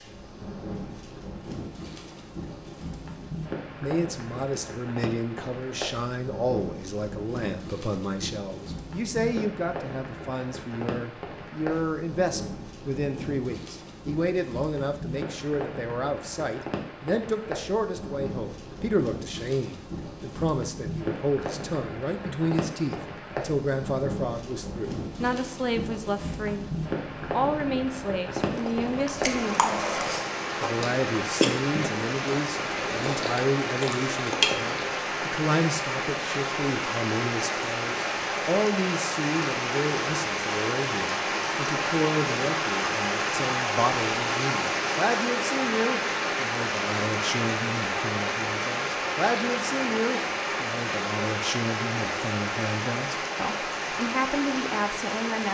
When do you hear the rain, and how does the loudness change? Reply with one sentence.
The rain can be heard from 0.0 to 55.4 s, getting louder.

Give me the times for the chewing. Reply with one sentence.
You can hear the chewing from 28.5 to 35.0 s.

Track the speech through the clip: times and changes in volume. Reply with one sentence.
The speech can be heard from 3.8 to 55.4 s, at a steady volume.